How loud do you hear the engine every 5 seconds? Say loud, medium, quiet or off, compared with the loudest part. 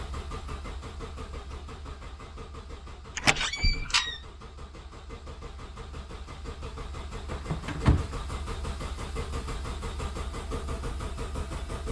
medium, loud, loud.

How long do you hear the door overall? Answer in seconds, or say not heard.
2 s.